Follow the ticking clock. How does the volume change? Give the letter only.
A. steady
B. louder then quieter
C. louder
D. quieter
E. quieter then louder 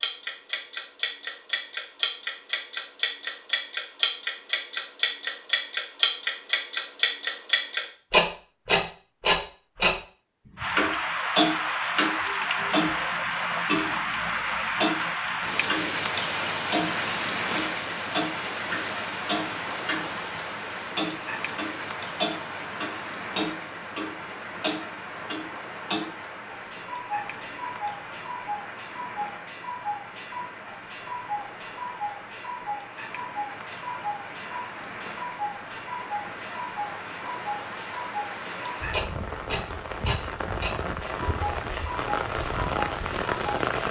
D.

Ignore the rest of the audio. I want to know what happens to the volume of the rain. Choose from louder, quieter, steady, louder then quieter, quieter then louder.
quieter then louder.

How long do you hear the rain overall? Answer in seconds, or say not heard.
33 s.